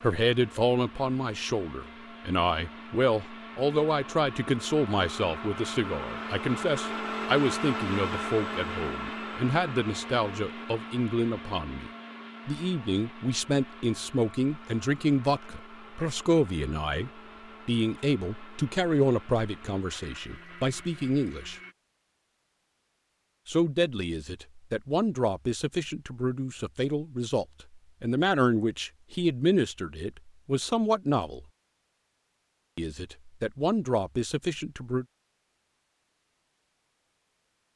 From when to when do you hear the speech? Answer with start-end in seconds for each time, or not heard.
0.0-21.6, 23.4-31.4, 32.8-35.0.